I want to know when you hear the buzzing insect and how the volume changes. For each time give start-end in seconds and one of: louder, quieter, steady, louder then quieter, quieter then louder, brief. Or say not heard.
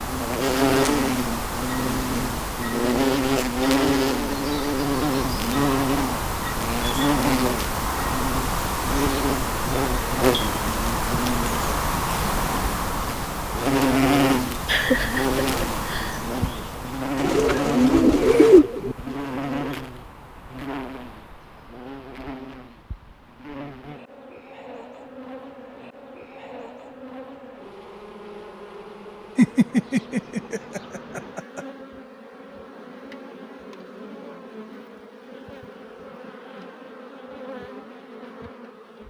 0.0-39.0 quieter.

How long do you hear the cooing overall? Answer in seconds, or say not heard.
3 s.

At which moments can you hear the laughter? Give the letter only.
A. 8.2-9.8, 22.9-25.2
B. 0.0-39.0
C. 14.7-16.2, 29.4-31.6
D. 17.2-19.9
C.